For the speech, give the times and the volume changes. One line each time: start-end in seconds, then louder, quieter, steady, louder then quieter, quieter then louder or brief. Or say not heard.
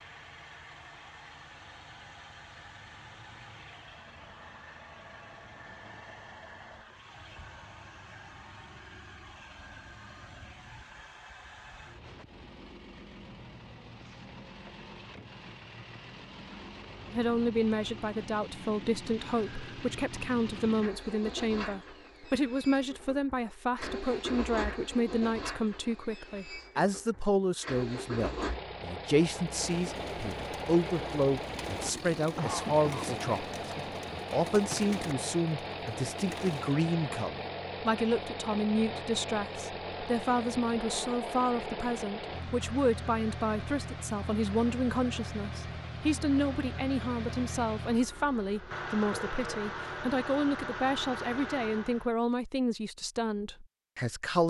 17.1-54.4 steady.